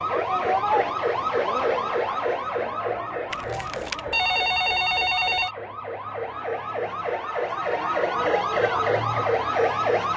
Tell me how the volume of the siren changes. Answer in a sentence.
The volume of the siren goes down, then up.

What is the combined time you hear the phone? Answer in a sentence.
You can hear the phone for 2 seconds altogether.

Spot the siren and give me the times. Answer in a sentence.
You can hear the siren from 0.0 to 10.1 s.